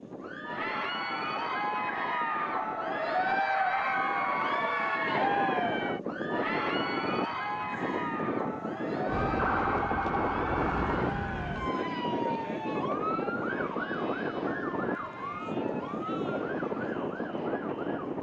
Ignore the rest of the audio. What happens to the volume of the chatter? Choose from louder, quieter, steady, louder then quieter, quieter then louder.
quieter.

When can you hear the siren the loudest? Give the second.
10 s.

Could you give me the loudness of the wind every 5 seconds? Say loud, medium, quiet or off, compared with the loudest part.
medium, loud, loud, loud.